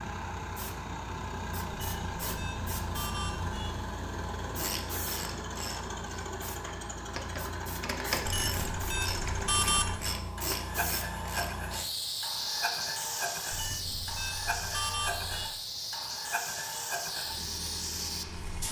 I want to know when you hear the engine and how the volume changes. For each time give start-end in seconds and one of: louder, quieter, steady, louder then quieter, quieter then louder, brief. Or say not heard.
0.0-18.6 steady.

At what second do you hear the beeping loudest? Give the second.
10 s.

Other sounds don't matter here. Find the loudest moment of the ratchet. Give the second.
8 s.